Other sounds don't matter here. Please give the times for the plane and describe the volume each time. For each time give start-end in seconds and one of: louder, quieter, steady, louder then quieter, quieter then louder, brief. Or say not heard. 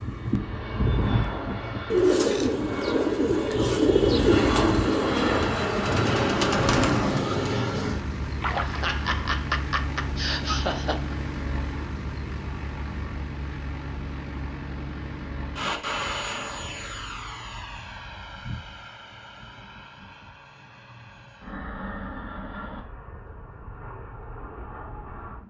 0.0-25.4 quieter.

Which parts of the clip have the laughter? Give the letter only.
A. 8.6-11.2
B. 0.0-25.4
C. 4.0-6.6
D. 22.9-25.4
A.